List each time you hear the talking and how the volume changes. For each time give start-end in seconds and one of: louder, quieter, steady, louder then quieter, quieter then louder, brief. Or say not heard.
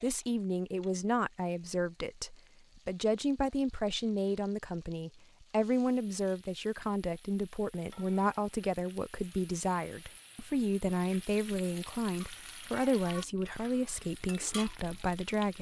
0.0-15.5 steady.